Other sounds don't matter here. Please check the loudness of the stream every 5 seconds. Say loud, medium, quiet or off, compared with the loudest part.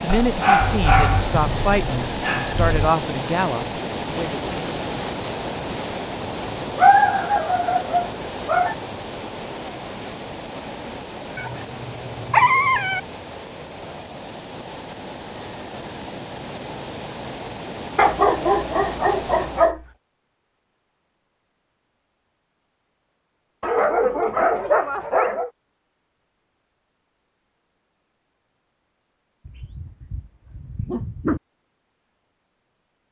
loud, loud, medium, medium, off, off, off.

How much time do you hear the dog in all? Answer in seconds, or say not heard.
12 s.